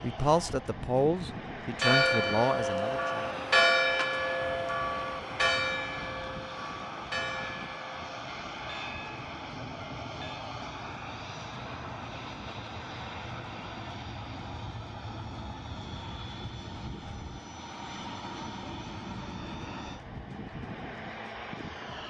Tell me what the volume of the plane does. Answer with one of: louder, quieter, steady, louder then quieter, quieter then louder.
steady.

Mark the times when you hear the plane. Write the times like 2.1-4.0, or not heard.
0.0-22.0.